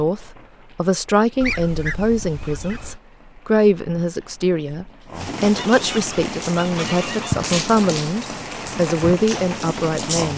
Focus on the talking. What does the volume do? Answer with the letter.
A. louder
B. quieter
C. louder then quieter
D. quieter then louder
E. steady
E.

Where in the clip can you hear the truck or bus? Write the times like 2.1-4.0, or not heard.
not heard.